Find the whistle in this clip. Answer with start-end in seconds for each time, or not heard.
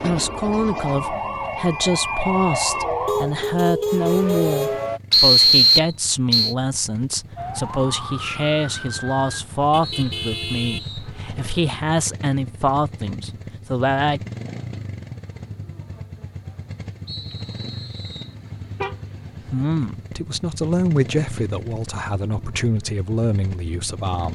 5.1-6.5, 9.8-11.1, 17.1-18.4.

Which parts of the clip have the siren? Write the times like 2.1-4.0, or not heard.
0.0-5.0, 7.3-9.4.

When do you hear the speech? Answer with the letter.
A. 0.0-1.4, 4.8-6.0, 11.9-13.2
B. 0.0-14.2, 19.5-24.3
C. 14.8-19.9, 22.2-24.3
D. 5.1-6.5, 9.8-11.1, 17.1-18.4
B.